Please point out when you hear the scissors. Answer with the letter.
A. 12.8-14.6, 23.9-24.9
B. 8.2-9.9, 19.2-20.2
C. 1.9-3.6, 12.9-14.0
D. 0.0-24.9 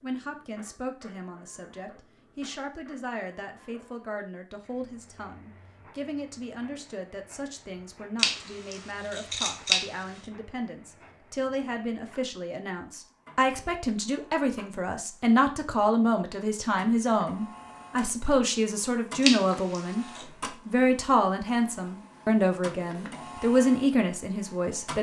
B.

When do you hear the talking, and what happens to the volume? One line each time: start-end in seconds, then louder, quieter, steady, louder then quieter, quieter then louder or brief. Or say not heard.
0.0-24.9 louder.